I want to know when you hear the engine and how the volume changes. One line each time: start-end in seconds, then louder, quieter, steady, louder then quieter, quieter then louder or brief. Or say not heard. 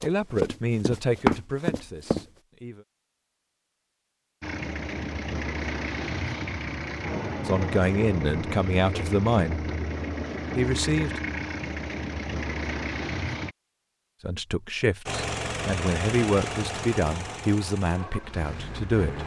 4.4-13.6 steady
15.1-19.2 quieter.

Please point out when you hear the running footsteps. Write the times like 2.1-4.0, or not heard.
0.0-2.2.